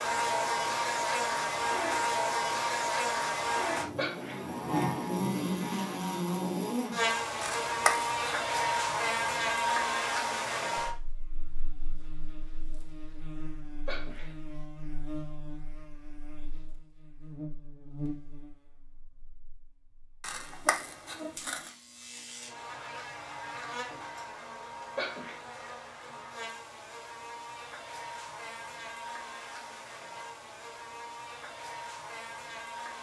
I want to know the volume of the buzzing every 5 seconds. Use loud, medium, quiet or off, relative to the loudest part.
loud, loud, medium, quiet, quiet, quiet, quiet.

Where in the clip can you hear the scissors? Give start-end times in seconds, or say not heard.
7.4-8.2, 20.2-21.7.